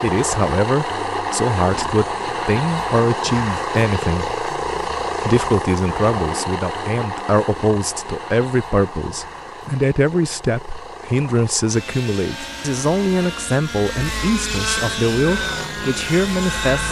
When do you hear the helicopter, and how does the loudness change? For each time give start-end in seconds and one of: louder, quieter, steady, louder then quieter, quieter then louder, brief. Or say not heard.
0.0-16.8 quieter then louder.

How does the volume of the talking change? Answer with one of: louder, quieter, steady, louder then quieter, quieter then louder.
steady.